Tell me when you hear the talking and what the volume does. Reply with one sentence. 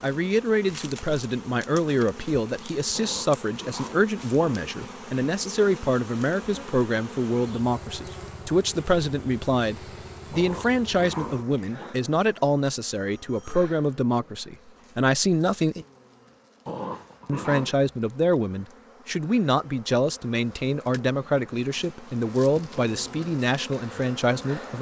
The talking can be heard from 0.0 to 15.8 s, at a steady volume; and from 17.2 to 24.7 s, at a steady volume.